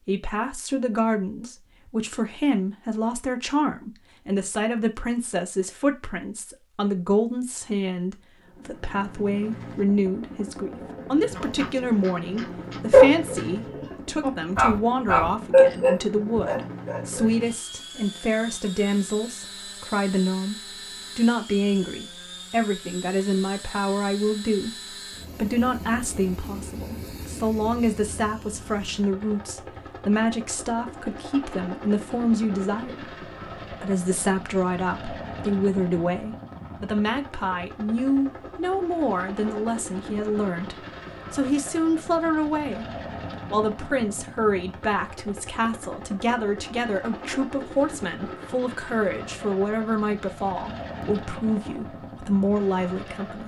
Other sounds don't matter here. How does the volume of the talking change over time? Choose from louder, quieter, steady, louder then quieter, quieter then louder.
steady.